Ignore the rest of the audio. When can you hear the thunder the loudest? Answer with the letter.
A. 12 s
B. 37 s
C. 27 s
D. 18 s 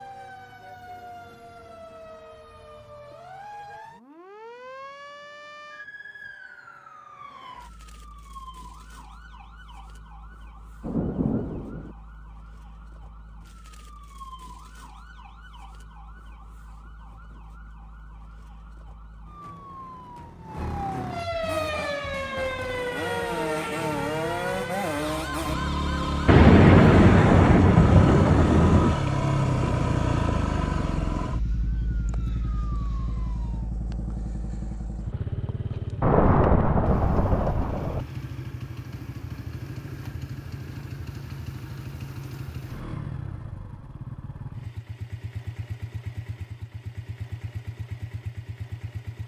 C.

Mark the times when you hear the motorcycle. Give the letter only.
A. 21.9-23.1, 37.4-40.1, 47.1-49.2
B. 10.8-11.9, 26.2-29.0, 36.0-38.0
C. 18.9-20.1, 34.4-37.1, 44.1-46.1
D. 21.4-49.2
D.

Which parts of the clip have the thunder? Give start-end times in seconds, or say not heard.
10.8-11.9, 26.2-29.0, 36.0-38.0.